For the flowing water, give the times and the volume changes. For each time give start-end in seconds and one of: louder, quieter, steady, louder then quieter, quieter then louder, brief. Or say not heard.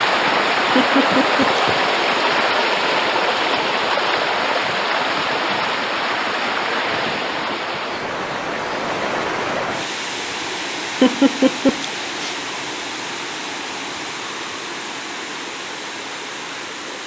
0.0-17.0 quieter.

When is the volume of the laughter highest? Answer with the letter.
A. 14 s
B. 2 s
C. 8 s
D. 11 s
D.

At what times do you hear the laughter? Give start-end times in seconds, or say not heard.
0.8-1.6, 11.0-12.3.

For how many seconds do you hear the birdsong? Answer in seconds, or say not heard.
not heard.